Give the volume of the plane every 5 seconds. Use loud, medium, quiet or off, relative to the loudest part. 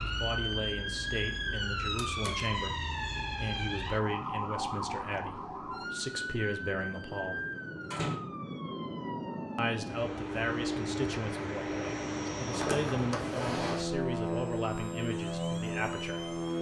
quiet, medium, loud, loud.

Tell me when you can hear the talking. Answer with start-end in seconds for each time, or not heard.
0.0-7.4, 9.6-16.3.